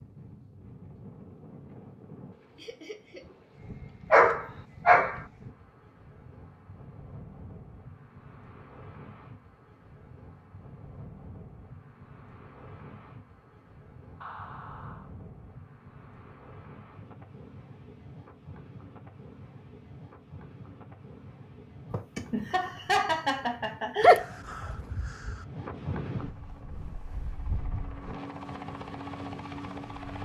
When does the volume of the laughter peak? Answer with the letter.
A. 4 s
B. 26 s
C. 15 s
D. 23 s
D.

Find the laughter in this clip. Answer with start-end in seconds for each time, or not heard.
2.5-3.2, 14.2-15.1, 21.9-24.2.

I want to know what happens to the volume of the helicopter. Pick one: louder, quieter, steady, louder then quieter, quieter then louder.
louder.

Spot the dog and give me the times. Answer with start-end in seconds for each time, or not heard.
4.1-5.2, 24.0-25.4.